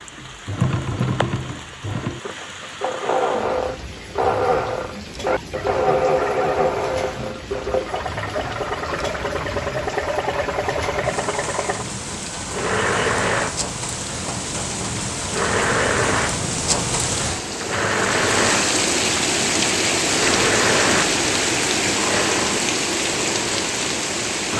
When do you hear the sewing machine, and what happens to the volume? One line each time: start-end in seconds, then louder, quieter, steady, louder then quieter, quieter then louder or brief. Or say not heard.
0.1-24.5 steady.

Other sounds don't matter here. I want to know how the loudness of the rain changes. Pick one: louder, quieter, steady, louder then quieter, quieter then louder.
louder.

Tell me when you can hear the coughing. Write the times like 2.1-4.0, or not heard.
not heard.